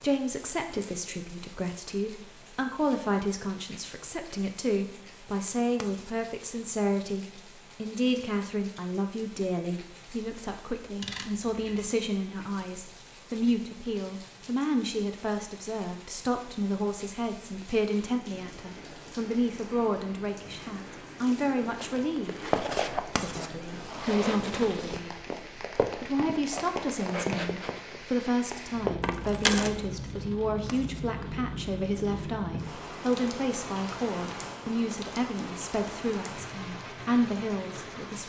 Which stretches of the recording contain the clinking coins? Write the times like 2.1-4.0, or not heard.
11.0-11.8, 29.0-29.7.